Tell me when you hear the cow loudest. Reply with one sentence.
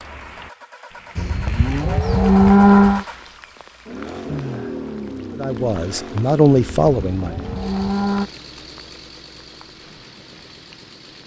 The loudest moment of the cow is at 3 seconds.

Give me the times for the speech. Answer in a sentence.
You can hear the speech from 5.3 to 7.5 s.